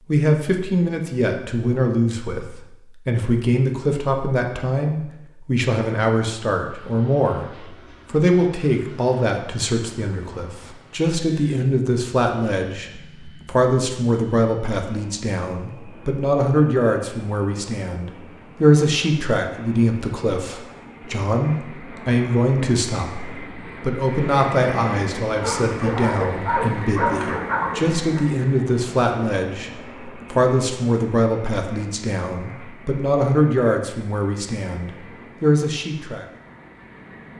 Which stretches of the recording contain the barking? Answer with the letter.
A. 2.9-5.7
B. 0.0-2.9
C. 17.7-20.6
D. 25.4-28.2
D.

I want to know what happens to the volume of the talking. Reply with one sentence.
The loudness of the talking stays about the same.